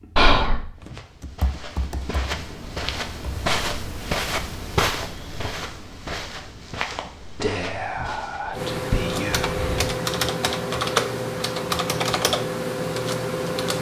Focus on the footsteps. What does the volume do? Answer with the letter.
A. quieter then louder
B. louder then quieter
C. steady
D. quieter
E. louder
B.